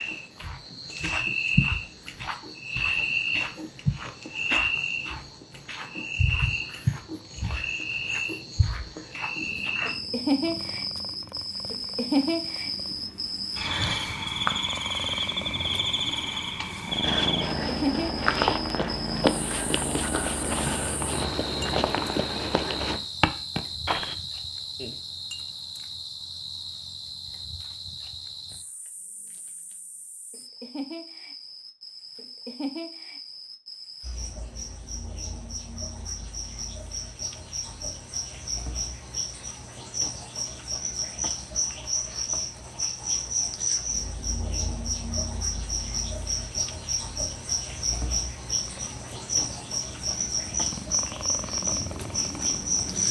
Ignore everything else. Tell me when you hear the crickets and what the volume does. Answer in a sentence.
You can hear the crickets from 0.0 to 53.0 s, getting quieter then louder.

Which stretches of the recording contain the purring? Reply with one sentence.
You can hear the purring from 9.3 to 23.1 s and from 48.5 to 53.0 s.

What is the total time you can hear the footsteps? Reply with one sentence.
You can hear the footsteps for 7 seconds altogether.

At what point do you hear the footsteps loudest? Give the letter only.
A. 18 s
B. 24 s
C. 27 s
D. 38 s
A.